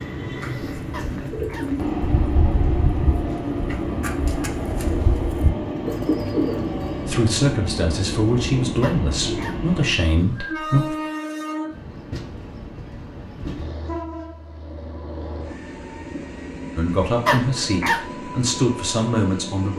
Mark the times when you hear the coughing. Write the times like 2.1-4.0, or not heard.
0.9-1.7, 8.8-9.6, 17.2-18.0.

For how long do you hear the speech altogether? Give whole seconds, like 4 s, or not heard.
7 s.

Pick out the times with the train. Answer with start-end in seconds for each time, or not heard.
0.0-19.7.